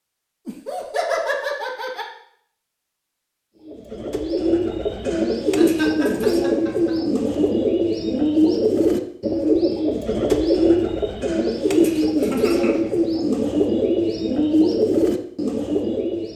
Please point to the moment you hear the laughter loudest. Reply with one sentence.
The volume of the laughter peaks at 1 second.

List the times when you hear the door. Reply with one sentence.
You can't hear the door here.